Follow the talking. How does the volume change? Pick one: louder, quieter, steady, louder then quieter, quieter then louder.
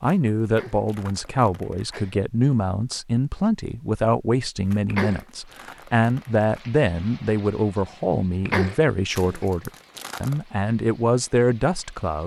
steady.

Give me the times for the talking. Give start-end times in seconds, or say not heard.
0.0-12.2.